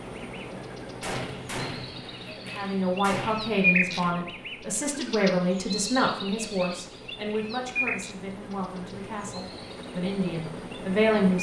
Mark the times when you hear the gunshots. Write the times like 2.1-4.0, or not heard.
1.0-4.1.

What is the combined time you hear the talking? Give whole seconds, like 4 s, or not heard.
9 s.